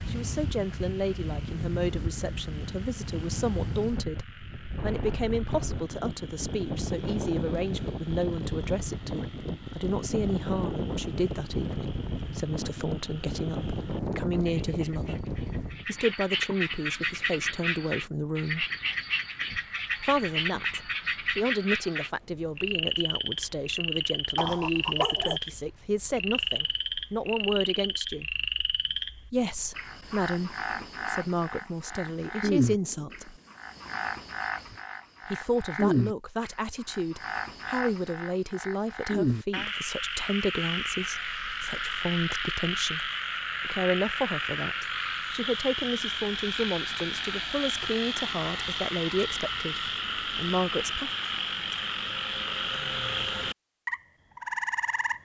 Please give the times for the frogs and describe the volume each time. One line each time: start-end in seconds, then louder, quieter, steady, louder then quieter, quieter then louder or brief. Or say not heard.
0.0-55.2 louder.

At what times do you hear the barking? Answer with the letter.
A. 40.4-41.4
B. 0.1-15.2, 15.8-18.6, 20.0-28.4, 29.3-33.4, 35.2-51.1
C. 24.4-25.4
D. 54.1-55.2
C.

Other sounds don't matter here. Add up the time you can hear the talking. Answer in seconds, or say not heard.
46 s.